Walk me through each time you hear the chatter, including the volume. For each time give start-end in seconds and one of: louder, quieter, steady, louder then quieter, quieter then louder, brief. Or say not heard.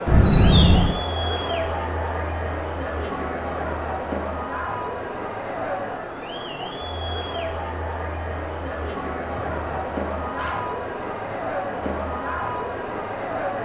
0.0-13.6 steady.